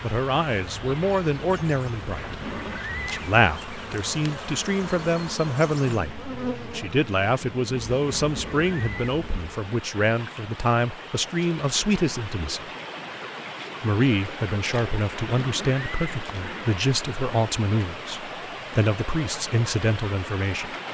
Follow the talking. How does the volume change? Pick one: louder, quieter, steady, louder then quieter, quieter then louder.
steady.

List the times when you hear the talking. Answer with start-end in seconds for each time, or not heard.
0.0-12.7, 13.8-20.8.